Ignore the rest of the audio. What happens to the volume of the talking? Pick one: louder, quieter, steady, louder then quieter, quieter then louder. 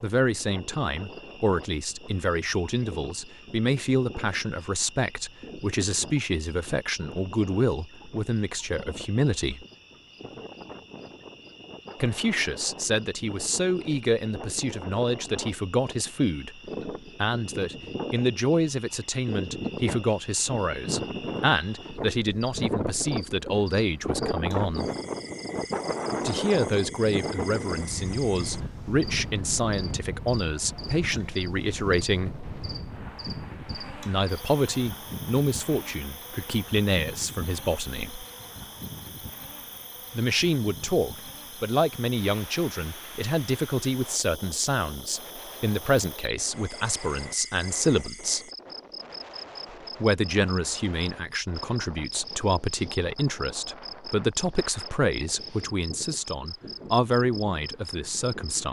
steady.